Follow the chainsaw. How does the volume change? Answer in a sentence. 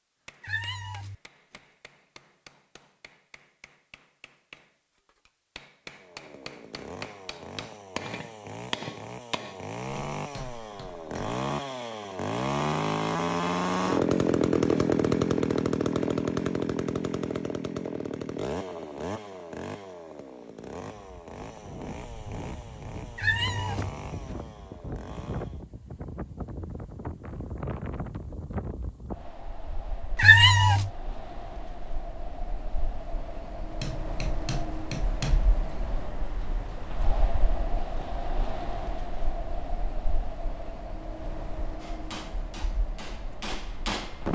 The volume of the chainsaw goes up, then down.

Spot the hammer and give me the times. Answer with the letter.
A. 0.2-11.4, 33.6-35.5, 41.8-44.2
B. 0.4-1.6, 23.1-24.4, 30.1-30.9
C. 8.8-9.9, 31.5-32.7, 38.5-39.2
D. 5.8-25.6
A.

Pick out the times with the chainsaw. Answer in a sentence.
The chainsaw can be heard from 5.8 to 25.6 s.